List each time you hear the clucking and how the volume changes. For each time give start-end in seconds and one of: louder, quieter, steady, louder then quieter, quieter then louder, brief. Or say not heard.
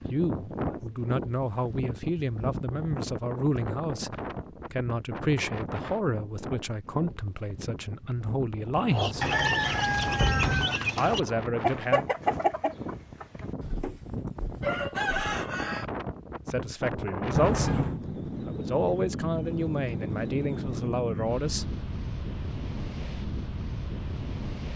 8.9-15.8 quieter then louder.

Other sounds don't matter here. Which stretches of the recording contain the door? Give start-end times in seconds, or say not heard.
8.9-10.8, 17.3-18.0.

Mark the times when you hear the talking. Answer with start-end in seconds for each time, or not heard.
0.1-9.3, 10.9-12.1, 16.4-21.7.